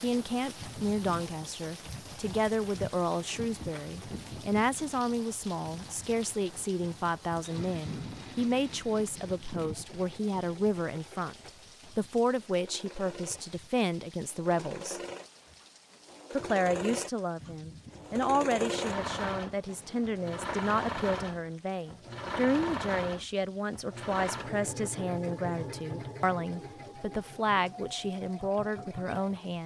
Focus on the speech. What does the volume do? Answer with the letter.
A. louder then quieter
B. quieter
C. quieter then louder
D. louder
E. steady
E.